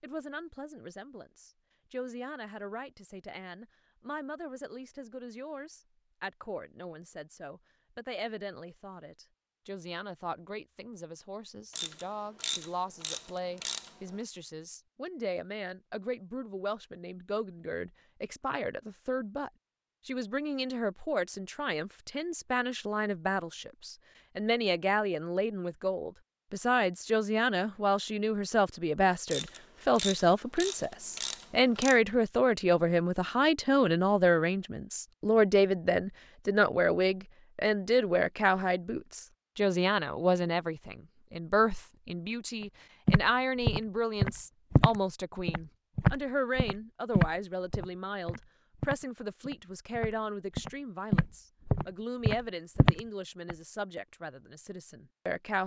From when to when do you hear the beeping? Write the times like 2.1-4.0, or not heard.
not heard.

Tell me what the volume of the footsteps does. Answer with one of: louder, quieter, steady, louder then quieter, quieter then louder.
quieter then louder.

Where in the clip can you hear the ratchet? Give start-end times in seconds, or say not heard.
11.8-13.9, 29.3-31.9.